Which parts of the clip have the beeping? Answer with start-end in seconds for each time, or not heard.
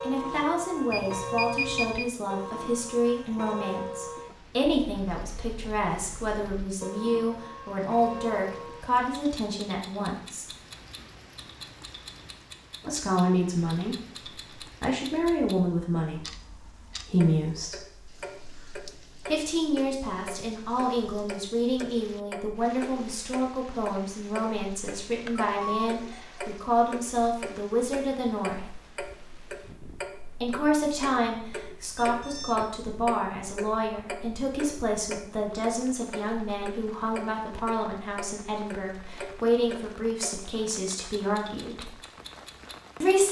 0.9-2.0, 25.2-26.4, 31.9-32.6.